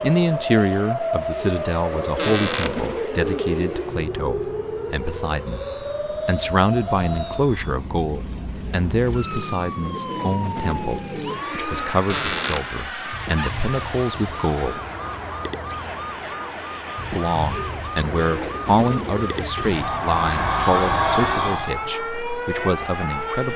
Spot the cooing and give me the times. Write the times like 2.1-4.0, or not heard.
1.4-3.9, 9.3-11.9, 17.5-19.6.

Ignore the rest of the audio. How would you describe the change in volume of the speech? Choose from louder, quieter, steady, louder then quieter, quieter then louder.
steady.